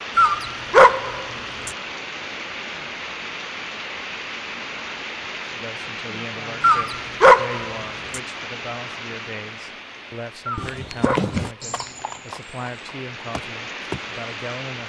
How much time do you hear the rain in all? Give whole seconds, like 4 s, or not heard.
15 s.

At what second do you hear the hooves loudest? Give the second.
11 s.